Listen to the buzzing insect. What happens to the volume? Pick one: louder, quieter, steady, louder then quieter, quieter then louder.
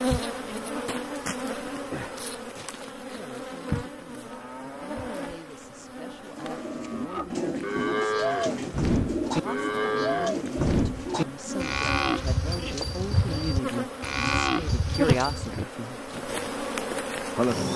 quieter then louder.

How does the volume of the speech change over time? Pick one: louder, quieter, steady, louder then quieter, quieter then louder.
louder.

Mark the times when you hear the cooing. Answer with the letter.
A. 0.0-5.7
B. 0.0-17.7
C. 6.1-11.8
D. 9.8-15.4
C.